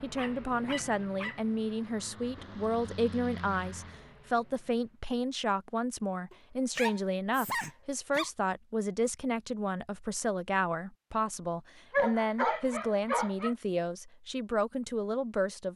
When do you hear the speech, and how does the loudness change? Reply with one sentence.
You can hear the speech from 0.0 to 15.7 s, at a steady volume.